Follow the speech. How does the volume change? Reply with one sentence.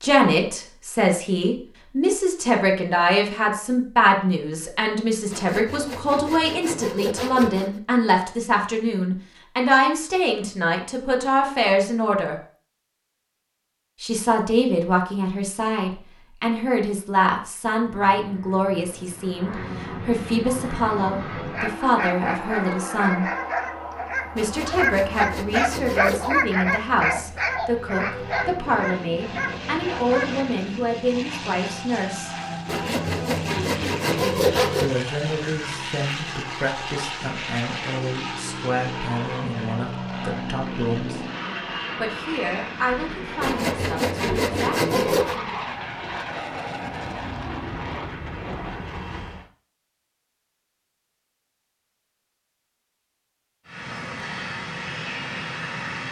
The volume of the speech goes down.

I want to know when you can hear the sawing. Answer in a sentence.
The sawing can be heard from 5.3 to 7.8 s, from 24.4 to 26.3 s, from 32.6 to 34.9 s and from 43.4 to 45.4 s.